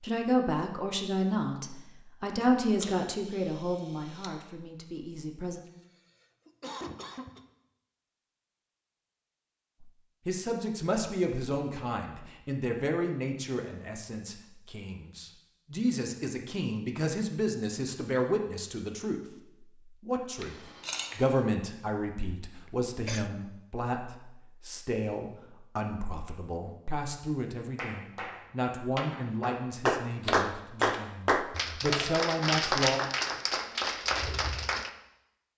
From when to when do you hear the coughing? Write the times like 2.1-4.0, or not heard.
5.7-7.4, 22.4-23.3.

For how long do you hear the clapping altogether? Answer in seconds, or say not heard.
7 s.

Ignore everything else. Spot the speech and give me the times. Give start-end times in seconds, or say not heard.
0.0-5.6, 9.8-20.6, 21.1-33.0.